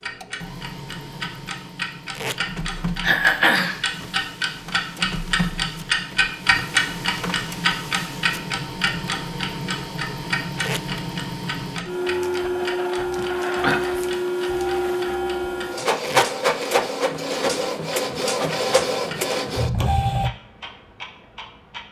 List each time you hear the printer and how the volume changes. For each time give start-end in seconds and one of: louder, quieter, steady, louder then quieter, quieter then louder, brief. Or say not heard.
0.0-20.3 louder.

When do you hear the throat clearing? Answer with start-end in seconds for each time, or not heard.
3.0-3.8, 13.2-13.8.